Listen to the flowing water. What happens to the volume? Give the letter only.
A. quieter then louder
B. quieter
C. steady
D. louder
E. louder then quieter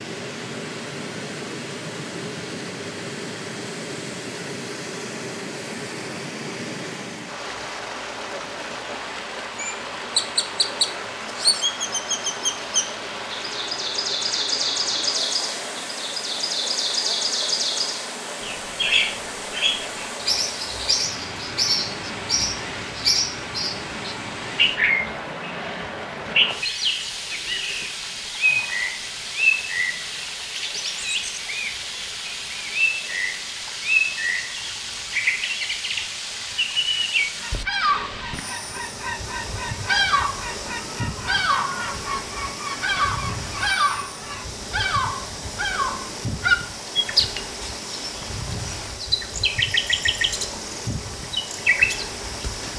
C.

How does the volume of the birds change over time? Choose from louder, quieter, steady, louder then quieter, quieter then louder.
steady.